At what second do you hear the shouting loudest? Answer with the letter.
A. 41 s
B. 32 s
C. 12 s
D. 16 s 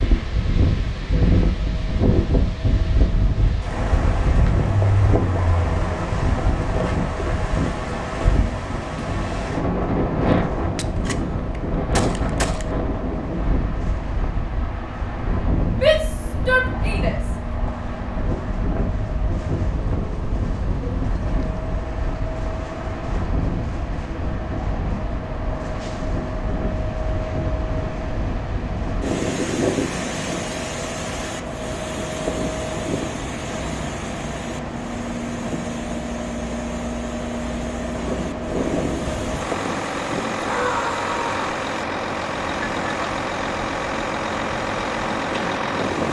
D.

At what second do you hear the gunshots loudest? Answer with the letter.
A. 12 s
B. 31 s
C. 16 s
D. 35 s
A.